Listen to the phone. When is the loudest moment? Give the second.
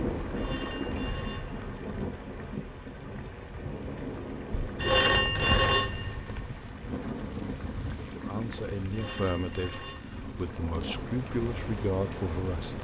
5 s.